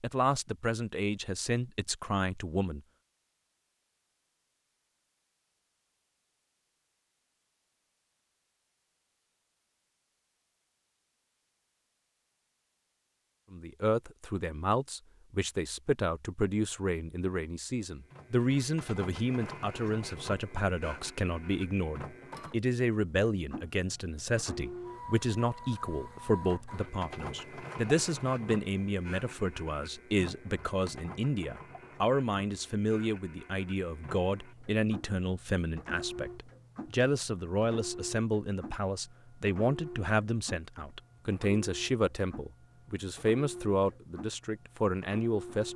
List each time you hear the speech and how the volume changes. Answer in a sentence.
You can hear the speech briefly from 0.0 to 2.8 s; and from 13.5 to 45.7 s, at a steady volume.